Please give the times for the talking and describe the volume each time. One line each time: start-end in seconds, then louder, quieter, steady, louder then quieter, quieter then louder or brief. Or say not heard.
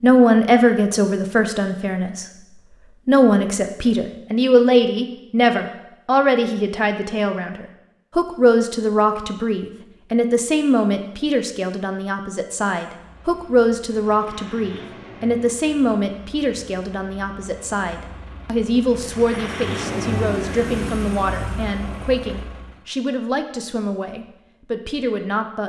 0.0-2.2 brief
3.0-25.6 quieter.